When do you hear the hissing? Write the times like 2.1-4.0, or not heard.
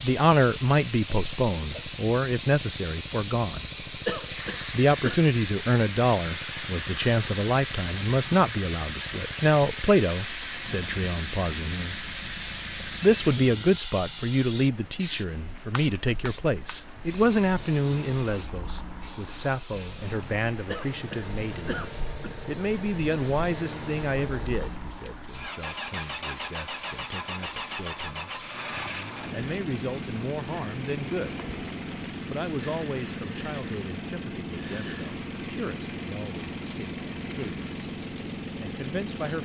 0.0-39.4.